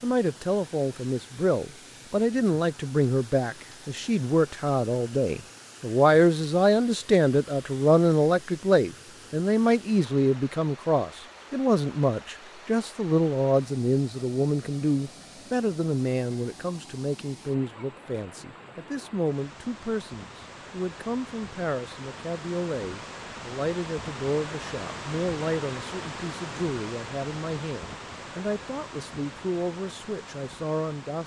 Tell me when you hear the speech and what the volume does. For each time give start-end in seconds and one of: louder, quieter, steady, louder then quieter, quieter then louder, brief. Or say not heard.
0.0-31.2 quieter.